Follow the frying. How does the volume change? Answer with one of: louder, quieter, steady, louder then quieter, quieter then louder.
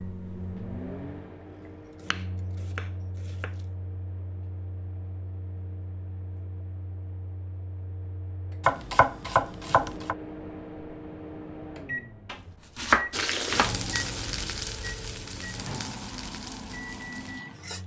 quieter.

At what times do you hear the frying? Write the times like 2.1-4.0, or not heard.
13.1-17.8.